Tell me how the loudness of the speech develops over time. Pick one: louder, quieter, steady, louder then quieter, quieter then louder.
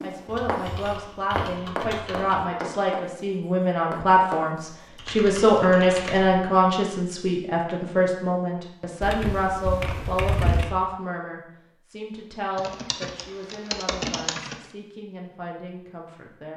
louder then quieter.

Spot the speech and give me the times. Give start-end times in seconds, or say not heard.
0.0-16.5.